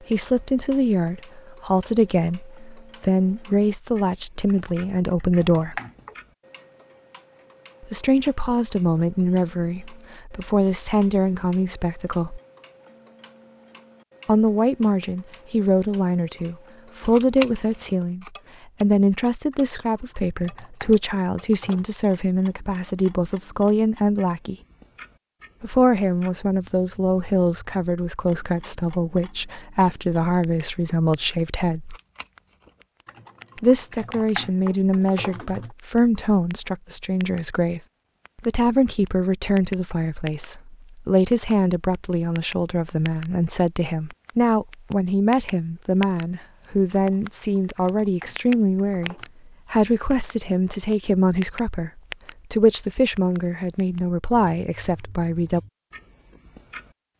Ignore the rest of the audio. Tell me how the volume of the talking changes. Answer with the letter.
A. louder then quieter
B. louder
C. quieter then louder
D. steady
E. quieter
D.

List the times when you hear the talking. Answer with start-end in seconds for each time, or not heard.
0.1-5.8, 7.8-12.4, 14.2-24.6, 25.6-31.9, 33.5-37.8, 38.5-55.6.